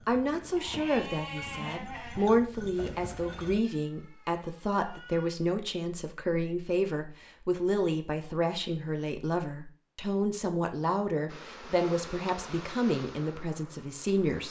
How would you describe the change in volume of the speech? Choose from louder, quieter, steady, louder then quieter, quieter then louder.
steady.